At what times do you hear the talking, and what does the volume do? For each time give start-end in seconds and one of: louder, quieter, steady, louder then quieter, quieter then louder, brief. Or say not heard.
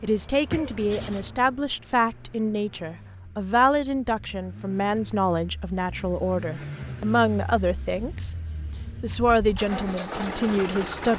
0.0-8.3 steady
9.0-11.1 brief.